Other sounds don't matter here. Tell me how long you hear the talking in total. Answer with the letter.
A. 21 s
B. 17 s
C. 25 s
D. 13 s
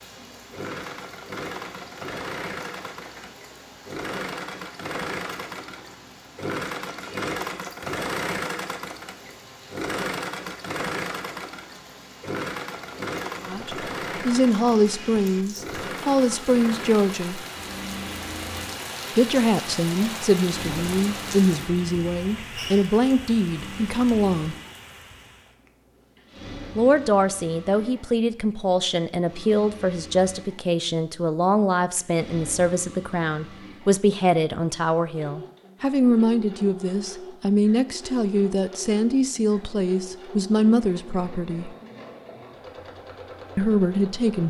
C.